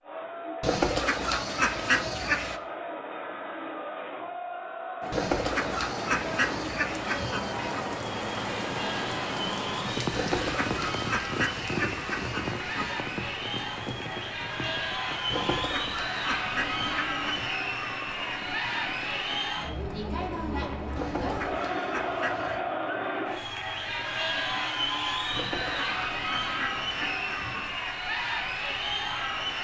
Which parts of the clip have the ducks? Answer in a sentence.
You can hear the ducks from 0.6 to 2.6 s, from 5.1 to 7.8 s, from 10.1 to 13.0 s, from 15.3 to 17.6 s, from 20.9 to 22.6 s and from 25.3 to 27.8 s.